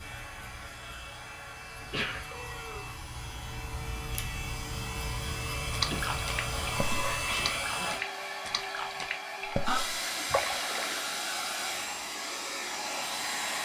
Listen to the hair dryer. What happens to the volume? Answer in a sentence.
The loudness of the hair dryer goes up.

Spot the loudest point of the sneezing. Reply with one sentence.
The loudest moment of the sneezing is at 2 seconds.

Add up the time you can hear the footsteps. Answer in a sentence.
The footsteps can't be heard in this clip.